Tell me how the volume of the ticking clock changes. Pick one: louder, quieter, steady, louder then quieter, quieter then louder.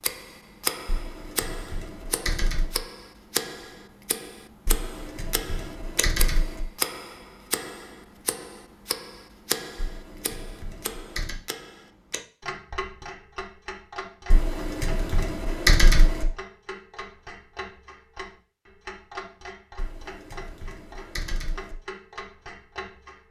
quieter.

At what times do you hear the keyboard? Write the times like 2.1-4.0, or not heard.
0.8-2.8, 4.7-6.6, 9.8-11.3, 14.3-16.2, 19.8-21.8.